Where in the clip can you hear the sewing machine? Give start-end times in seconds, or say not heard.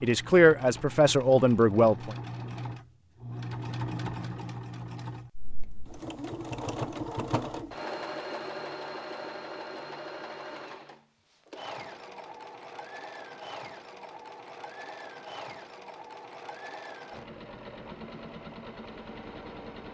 0.0-19.8.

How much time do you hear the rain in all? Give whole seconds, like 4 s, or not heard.
not heard.